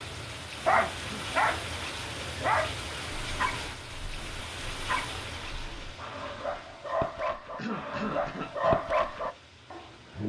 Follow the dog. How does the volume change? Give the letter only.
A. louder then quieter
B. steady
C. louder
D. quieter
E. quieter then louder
E.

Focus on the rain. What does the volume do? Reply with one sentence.
The loudness of the rain goes down.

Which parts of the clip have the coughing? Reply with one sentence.
The coughing can be heard from 0.7 to 1.4 s and from 7.5 to 8.8 s.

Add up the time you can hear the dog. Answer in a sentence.
The dog can be heard for 10 seconds in total.